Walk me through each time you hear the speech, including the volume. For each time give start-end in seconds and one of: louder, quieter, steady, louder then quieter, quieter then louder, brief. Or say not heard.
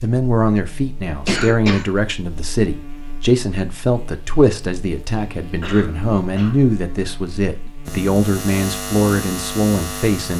0.0-10.3 steady.